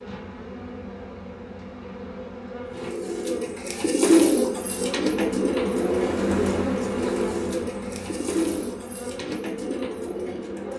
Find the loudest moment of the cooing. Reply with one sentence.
The volume of the cooing peaks at 4 seconds.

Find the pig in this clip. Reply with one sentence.
You can't hear the pig here.